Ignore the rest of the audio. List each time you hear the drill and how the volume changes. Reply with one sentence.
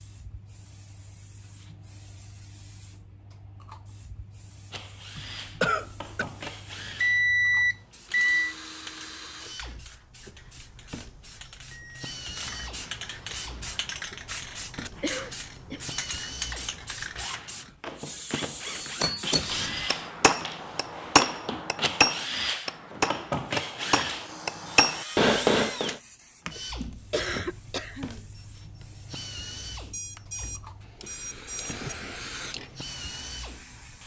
The drill can be heard from 4.7 to 34.0 s, getting louder then quieter.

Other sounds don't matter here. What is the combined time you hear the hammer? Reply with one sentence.
The hammer can be heard for 7 seconds in total.